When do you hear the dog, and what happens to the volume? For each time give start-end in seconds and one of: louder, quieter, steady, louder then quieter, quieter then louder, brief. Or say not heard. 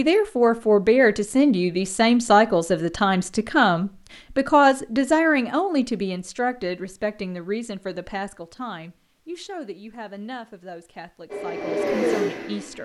not heard.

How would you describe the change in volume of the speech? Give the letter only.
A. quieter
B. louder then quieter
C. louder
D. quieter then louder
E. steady
A.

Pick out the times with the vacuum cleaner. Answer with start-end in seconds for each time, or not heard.
11.2-12.8.